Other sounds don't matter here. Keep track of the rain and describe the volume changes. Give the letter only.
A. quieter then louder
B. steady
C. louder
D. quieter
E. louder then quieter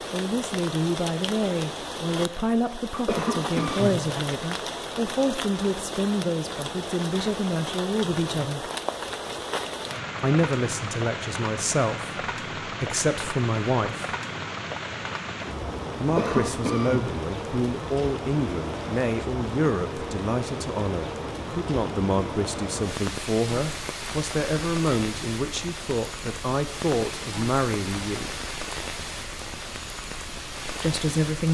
B.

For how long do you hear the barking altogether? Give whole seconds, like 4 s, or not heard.
not heard.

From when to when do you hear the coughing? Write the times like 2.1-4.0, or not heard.
3.0-4.0, 16.1-17.1.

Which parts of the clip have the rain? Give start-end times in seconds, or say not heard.
0.0-31.5.